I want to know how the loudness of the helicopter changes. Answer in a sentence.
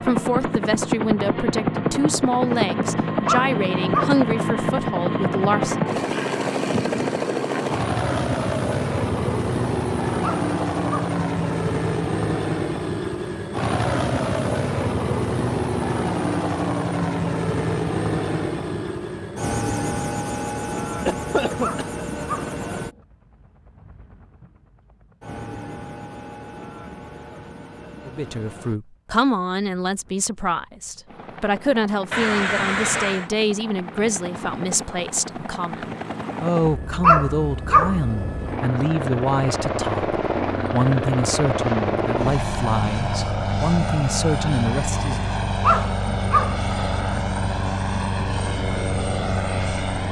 The volume of the helicopter goes down, then up.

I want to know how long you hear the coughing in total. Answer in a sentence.
You can hear the coughing for 2 seconds altogether.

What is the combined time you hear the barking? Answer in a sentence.
You can hear the barking for 5 seconds altogether.